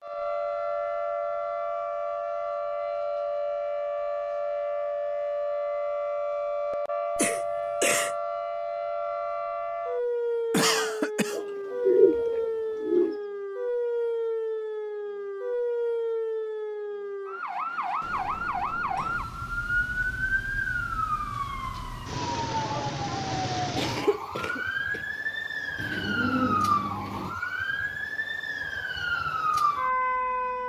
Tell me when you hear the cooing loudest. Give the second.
12 s.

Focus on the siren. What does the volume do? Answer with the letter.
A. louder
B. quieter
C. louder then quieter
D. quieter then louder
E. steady
E.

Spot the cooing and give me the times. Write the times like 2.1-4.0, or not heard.
11.3-13.2, 25.8-27.4.